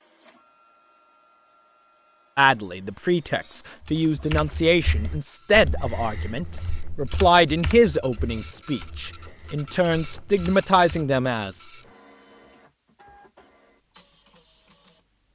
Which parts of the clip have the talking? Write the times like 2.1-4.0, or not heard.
2.4-11.6.